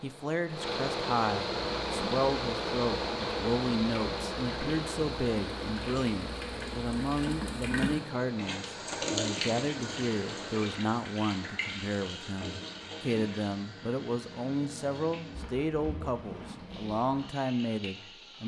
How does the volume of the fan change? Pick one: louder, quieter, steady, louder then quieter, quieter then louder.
quieter.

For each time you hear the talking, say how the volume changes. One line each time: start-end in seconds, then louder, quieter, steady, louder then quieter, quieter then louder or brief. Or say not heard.
0.0-18.4 steady.